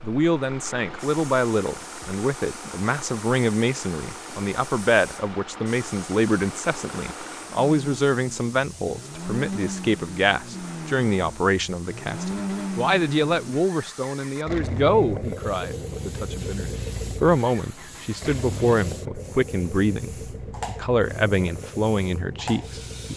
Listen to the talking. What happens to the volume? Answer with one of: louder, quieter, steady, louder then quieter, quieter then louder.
steady.